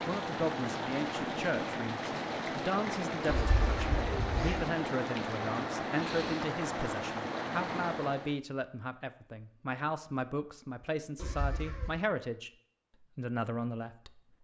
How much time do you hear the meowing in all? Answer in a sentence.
The meowing can be heard for 2 seconds in total.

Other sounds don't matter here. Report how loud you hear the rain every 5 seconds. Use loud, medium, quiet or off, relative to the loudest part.
loud, loud, off.